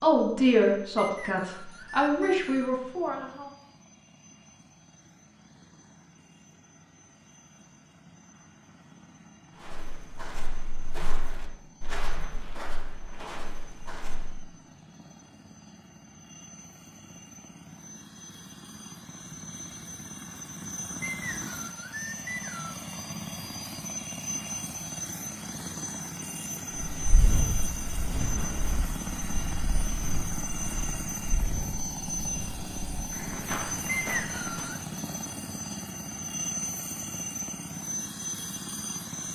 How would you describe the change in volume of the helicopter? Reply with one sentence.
The loudness of the helicopter goes up.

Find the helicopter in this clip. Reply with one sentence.
You can hear the helicopter from 0.0 to 39.3 s.